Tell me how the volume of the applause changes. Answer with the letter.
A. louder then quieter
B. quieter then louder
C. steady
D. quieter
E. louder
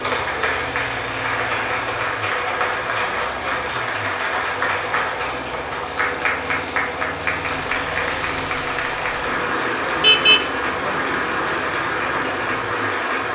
C.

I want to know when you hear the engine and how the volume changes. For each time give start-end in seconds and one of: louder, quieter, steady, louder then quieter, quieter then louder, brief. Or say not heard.
0.0-13.2 steady.